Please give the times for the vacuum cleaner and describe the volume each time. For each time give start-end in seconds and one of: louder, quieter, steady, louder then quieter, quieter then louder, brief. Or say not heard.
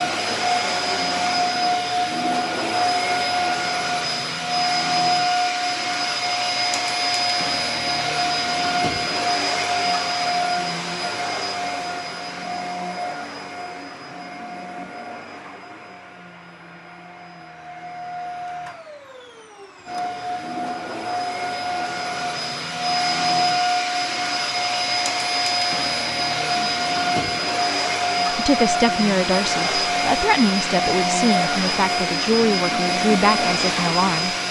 0.0-34.4 quieter then louder.